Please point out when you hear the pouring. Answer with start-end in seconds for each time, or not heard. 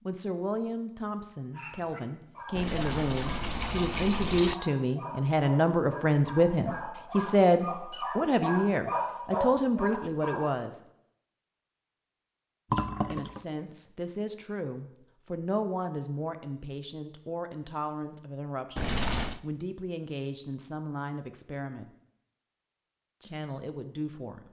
2.5-4.5, 12.7-13.4, 18.8-19.4.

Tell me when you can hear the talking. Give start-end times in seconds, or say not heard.
0.1-10.8, 13.1-21.9, 23.2-24.4.